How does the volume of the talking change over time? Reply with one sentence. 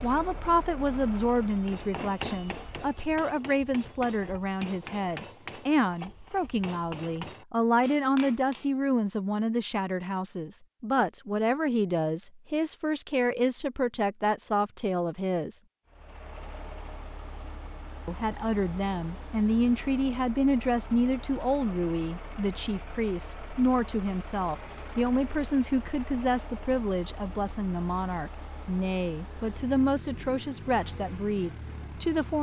The loudness of the talking stays about the same.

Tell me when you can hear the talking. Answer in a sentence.
The talking can be heard from 0.0 to 15.6 s and from 18.1 to 32.3 s.